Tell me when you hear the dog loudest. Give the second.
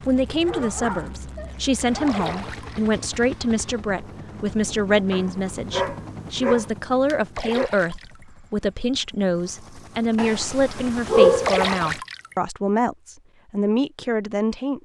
11 s.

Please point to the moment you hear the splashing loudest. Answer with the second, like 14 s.
12 s.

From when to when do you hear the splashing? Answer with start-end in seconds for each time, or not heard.
2.0-3.0, 7.3-8.2, 11.4-12.3.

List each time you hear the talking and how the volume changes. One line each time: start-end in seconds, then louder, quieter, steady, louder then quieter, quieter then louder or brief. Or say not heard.
0.1-14.7 steady.